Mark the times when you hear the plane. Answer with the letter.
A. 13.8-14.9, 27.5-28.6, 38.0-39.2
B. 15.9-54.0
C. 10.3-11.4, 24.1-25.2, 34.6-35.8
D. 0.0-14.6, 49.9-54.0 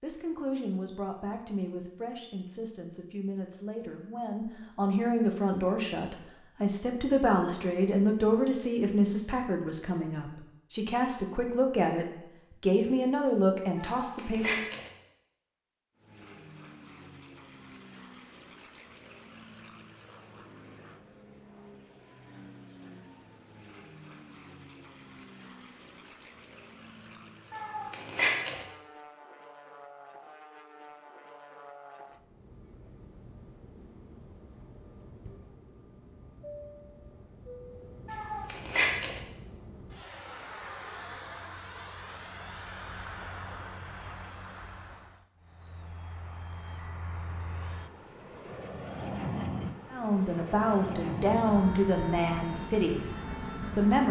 B.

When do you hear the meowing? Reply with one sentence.
You can hear the meowing from 13.8 to 14.9 s, from 27.5 to 28.6 s and from 38.0 to 39.2 s.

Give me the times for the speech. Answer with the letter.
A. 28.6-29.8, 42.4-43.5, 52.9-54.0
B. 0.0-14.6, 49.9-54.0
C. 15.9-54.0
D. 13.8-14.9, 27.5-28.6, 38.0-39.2
B.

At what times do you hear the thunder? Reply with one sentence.
You can't hear the thunder here.